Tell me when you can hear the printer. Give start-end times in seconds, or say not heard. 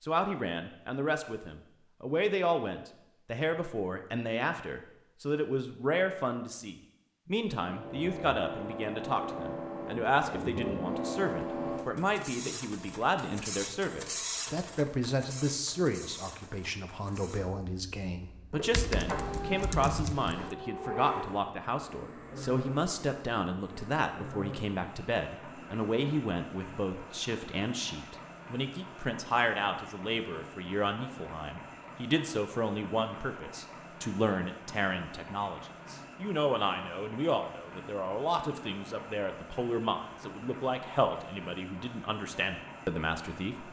7.6-43.6.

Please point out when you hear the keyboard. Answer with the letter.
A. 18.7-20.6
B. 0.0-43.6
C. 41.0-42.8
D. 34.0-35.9
A.